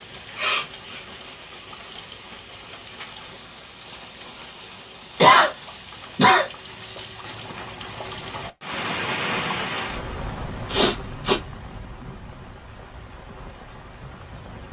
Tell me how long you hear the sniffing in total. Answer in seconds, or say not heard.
3 s.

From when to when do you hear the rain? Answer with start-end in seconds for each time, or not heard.
0.0-14.6.